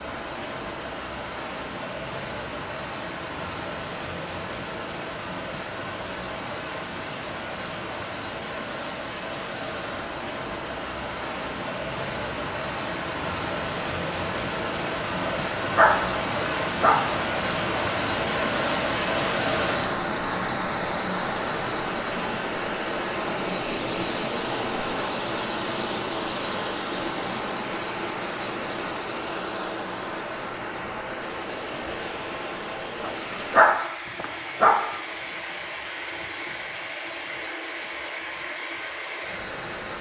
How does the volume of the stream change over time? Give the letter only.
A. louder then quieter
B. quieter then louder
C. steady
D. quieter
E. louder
A.